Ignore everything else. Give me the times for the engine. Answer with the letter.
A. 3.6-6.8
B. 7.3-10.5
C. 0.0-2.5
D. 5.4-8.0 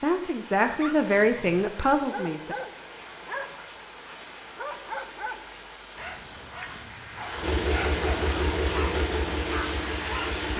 B.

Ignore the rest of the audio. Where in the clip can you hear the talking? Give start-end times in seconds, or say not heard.
0.0-2.5.